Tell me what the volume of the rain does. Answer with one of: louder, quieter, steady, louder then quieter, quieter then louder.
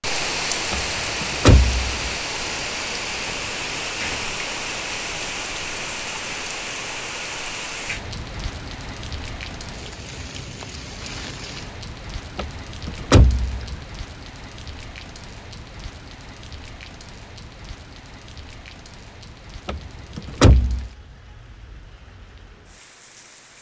quieter.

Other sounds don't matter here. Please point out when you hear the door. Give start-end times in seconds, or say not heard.
0.7-2.1, 12.3-13.8, 19.6-20.9.